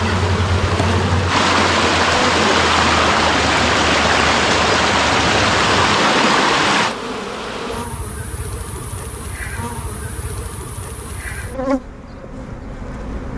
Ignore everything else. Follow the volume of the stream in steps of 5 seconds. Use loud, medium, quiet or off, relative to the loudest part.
loud, loud, off.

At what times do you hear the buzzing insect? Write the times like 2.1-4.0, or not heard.
0.0-13.3.